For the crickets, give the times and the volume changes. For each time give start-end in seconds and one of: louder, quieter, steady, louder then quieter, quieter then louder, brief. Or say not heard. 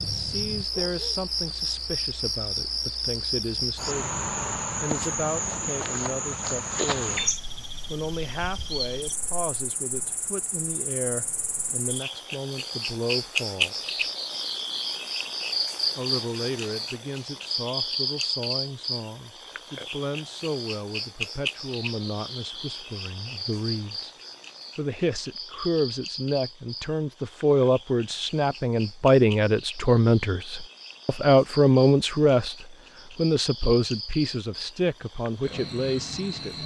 0.0-36.6 quieter.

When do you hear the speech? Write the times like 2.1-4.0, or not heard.
0.0-7.2, 7.9-13.9, 15.9-24.1, 24.8-36.6.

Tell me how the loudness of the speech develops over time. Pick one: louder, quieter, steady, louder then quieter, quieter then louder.
louder.